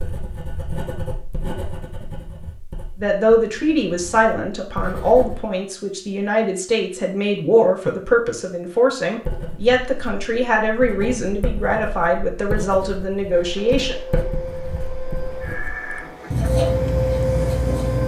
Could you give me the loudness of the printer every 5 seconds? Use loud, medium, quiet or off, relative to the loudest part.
off, off, medium, loud.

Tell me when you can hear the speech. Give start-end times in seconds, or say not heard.
3.0-13.9.